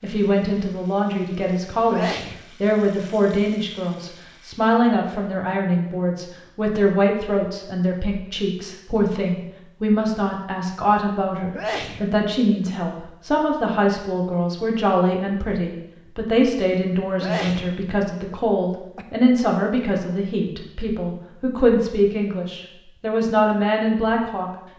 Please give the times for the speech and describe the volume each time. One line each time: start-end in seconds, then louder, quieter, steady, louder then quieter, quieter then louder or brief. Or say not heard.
0.0-24.5 steady.